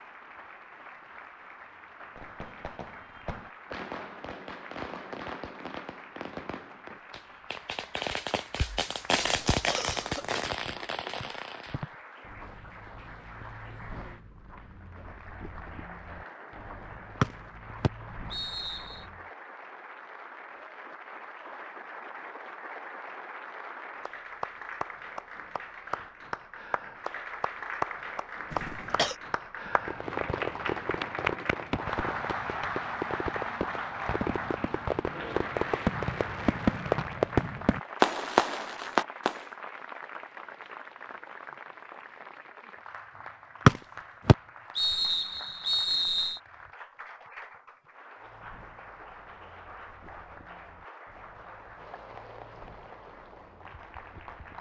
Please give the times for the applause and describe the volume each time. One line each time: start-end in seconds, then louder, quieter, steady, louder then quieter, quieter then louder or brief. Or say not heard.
0.0-54.5 louder then quieter.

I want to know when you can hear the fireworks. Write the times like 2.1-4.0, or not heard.
2.1-11.9, 29.6-39.5.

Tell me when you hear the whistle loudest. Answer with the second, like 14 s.
44 s.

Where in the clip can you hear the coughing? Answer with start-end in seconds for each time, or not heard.
9.2-10.5, 28.5-29.1.